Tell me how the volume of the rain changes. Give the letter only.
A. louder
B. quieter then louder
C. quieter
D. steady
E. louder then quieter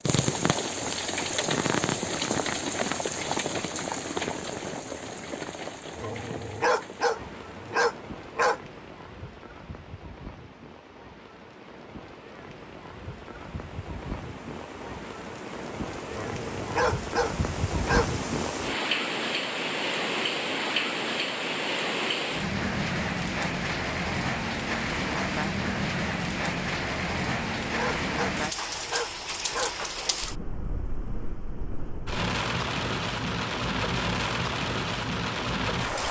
B.